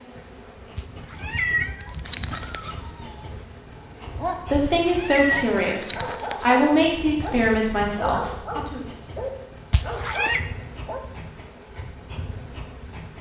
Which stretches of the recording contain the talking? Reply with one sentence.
The talking can be heard from 4.5 to 8.8 s.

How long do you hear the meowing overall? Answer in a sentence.
The meowing can be heard for 5 seconds in total.